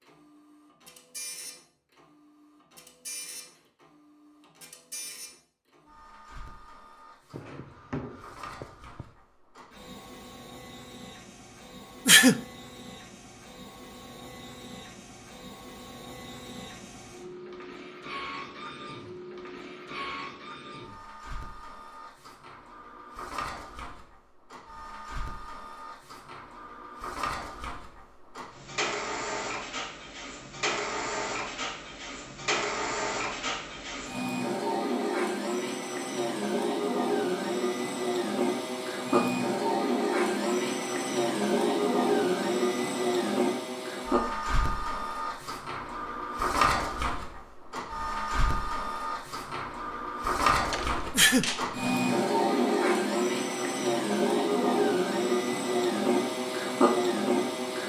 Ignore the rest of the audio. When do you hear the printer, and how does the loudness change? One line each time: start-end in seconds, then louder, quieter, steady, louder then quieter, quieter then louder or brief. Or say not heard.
0.0-57.8 louder.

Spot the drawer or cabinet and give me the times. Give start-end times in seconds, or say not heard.
7.3-9.1, 50.7-51.7.